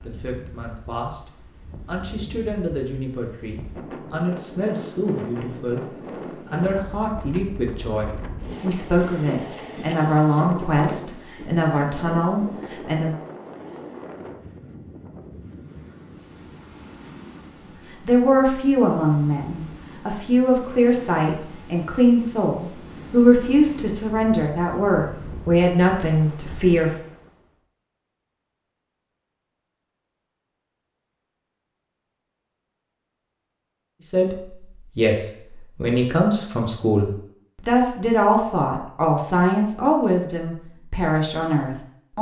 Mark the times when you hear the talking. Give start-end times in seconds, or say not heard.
0.0-5.8, 6.5-13.2, 17.6-26.9, 34.0-42.1.